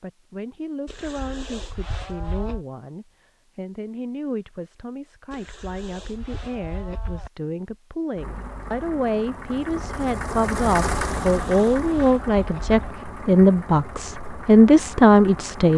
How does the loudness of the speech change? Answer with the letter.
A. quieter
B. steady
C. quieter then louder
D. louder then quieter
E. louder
E.